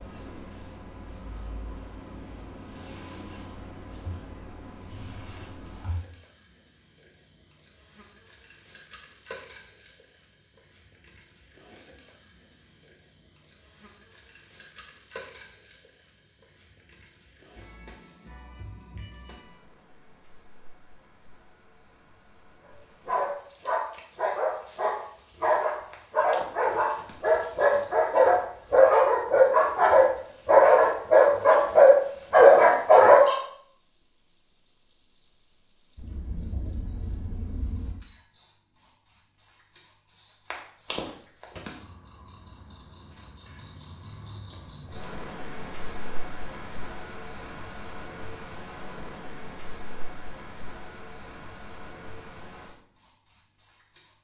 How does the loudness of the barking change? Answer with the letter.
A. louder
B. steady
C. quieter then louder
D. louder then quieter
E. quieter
A.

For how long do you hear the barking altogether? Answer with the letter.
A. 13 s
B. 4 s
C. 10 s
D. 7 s
C.